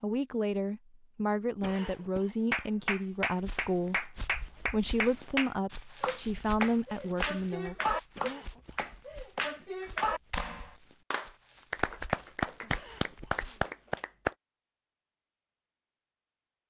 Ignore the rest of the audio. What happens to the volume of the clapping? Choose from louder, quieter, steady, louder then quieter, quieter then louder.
steady.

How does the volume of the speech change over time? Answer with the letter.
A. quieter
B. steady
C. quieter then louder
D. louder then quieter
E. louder
B.